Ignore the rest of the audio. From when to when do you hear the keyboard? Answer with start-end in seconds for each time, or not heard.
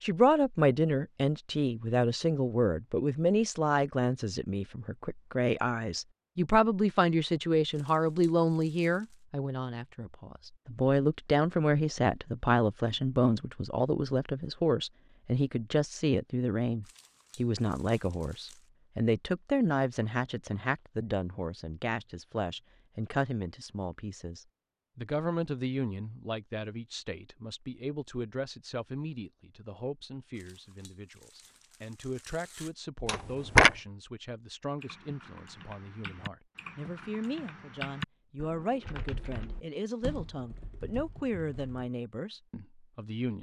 34.8-41.6.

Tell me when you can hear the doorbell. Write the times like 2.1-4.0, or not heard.
33.0-33.8.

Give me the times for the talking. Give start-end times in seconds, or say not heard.
0.0-43.3.